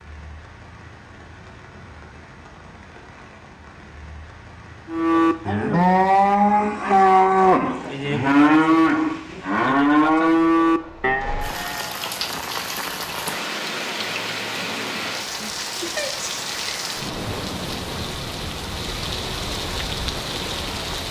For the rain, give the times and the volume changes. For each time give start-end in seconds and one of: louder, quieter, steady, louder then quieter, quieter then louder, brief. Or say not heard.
0.0-21.0 louder.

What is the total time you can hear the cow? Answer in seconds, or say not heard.
7 s.